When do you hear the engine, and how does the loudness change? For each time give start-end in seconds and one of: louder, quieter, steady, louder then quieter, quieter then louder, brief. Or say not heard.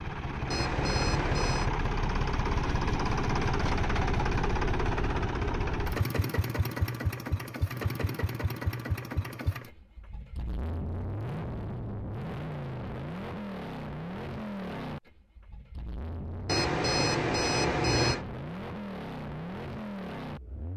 0.0-20.7 quieter.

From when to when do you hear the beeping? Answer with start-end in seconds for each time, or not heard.
0.5-1.8, 16.4-18.2.